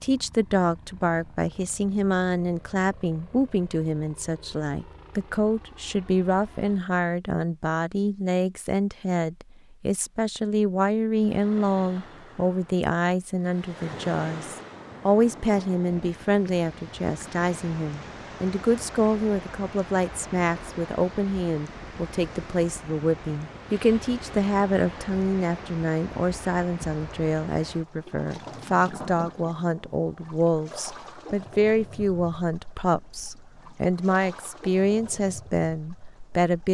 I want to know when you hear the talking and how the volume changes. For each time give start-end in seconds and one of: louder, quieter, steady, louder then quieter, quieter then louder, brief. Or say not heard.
0.0-36.6 steady.